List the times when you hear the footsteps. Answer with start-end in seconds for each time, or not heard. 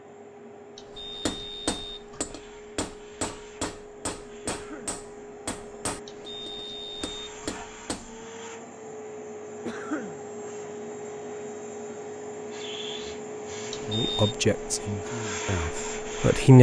not heard.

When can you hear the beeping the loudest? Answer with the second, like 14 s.
14 s.